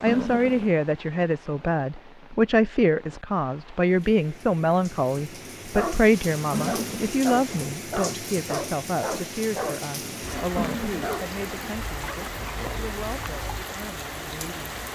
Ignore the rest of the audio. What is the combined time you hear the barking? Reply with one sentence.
The barking can be heard for 8 seconds in total.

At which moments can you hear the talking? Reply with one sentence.
You can hear the talking from 0.0 to 14.8 s.